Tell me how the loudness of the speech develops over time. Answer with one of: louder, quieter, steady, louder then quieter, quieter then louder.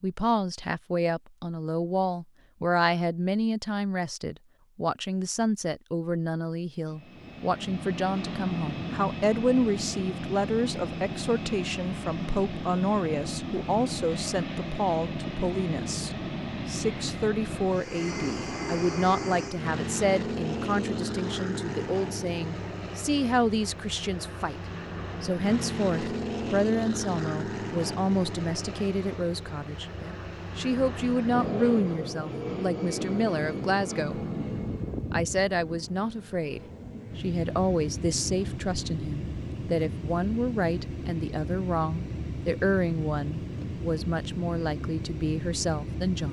steady.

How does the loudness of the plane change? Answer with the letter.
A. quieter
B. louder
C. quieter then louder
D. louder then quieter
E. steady
E.